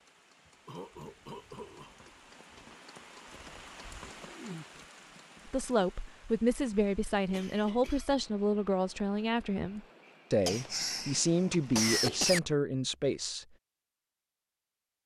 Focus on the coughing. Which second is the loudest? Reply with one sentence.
The volume of the coughing peaks at 12 seconds.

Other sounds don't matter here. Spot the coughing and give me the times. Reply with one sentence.
You can hear the coughing from 0.7 to 1.9 s, from 7.3 to 8.2 s and from 10.4 to 12.4 s.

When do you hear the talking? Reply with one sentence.
You can hear the talking from 5.5 to 13.4 s.